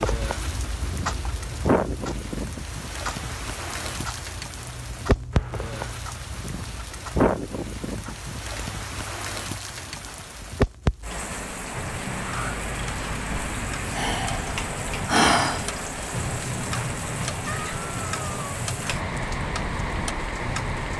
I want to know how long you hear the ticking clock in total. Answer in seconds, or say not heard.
21 s.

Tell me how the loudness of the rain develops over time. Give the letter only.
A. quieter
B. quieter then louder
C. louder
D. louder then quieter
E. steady
E.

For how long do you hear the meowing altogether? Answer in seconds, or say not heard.
2 s.